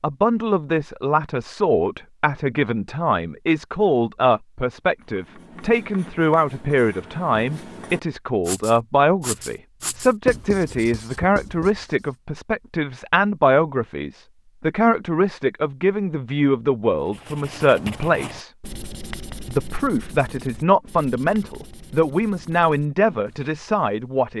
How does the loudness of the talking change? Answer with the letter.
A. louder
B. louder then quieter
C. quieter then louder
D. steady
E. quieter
D.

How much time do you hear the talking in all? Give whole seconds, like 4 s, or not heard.
23 s.